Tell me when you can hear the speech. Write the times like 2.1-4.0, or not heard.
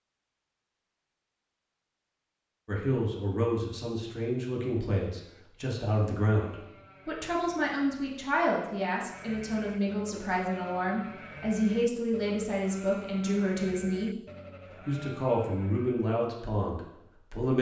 2.6-14.2, 14.8-17.5.